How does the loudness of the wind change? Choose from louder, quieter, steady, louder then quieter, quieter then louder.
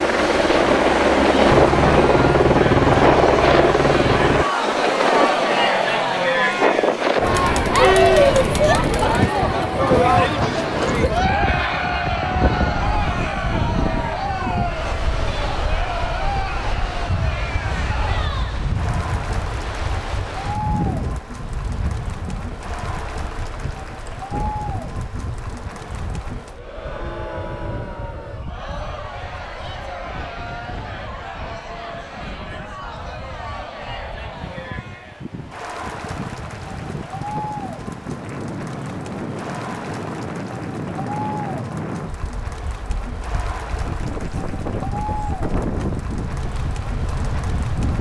quieter then louder.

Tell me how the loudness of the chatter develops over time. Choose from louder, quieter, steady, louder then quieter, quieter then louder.
quieter.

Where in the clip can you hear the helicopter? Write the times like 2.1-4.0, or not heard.
0.0-4.5.